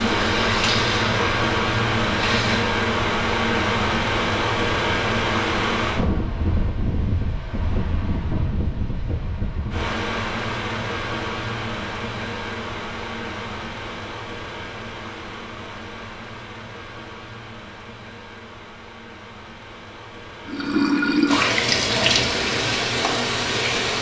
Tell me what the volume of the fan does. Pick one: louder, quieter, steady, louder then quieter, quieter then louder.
quieter.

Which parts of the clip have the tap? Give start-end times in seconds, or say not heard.
0.0-2.7, 20.4-23.9.